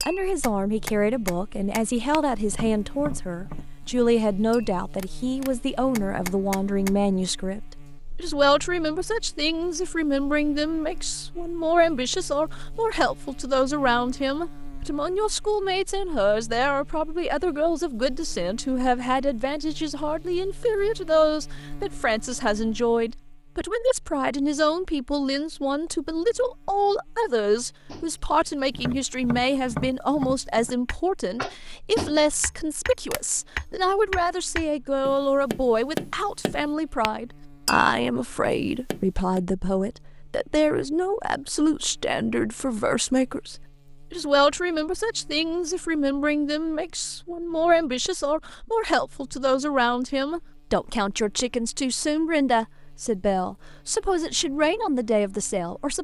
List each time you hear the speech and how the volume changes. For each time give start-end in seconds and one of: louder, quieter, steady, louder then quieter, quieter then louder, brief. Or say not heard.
0.0-55.9 steady.